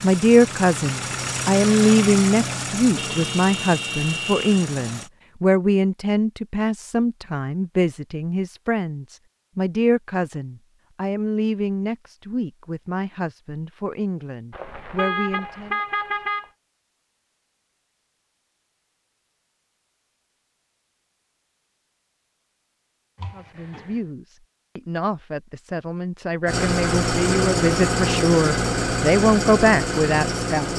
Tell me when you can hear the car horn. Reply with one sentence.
You can hear the car horn from 3.0 to 4.6 s, from 14.5 to 16.4 s and from 23.1 to 24.0 s.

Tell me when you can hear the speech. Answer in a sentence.
You can hear the speech from 0.0 to 15.8 s and from 23.3 to 30.7 s.